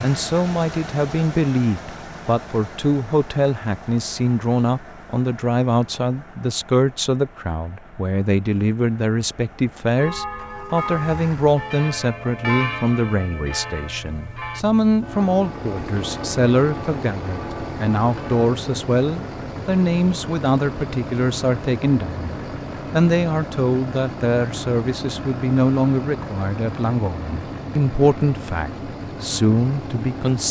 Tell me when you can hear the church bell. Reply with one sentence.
You can hear the church bell from 9.9 to 18.4 s.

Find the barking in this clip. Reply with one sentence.
You can't hear the barking here.